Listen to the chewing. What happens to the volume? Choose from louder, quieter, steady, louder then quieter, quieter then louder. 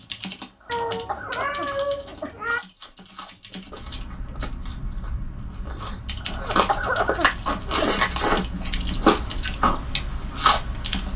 louder.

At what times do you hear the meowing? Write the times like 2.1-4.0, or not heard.
0.7-2.6.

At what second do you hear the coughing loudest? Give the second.
7 s.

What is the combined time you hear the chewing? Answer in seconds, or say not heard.
9 s.